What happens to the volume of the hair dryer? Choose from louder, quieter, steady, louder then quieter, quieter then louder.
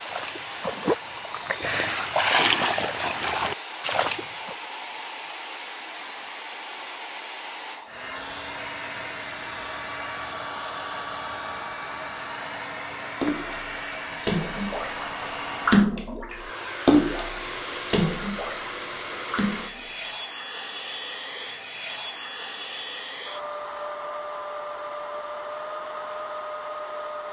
steady.